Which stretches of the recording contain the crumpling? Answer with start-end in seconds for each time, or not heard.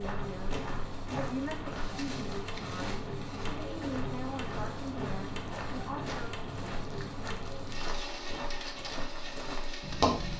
1.8-3.6, 6.8-8.0.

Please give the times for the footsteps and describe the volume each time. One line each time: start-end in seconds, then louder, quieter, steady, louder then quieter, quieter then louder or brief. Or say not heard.
0.0-10.3 steady.